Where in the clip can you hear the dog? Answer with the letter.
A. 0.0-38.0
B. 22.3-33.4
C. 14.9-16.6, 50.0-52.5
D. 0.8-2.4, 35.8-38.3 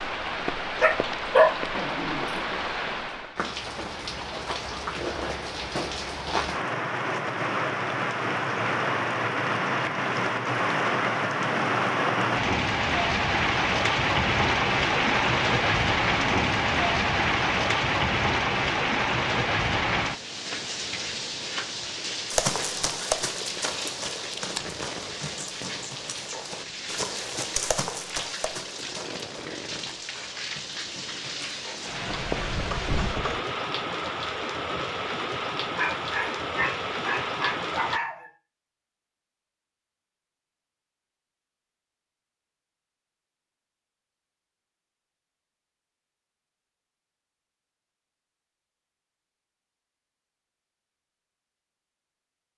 D.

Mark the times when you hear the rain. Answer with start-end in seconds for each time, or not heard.
0.0-38.0.